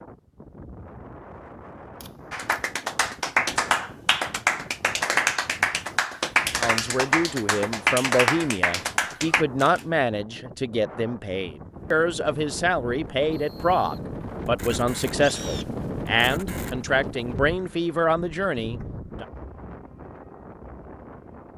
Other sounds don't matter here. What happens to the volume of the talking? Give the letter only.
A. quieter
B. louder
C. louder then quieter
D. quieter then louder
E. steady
E.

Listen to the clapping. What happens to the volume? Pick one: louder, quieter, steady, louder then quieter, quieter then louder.
steady.